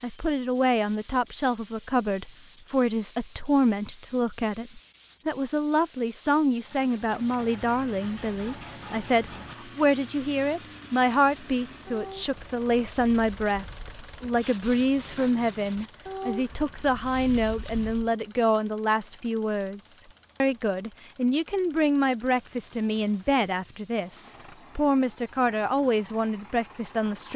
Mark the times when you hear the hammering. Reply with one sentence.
You can't hear the hammering here.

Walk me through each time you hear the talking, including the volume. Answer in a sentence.
The talking can be heard from 0.0 to 27.3 s, at a steady volume.